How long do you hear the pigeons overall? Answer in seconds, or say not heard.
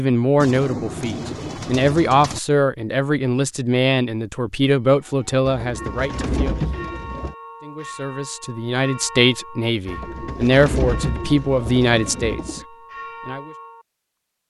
7 s.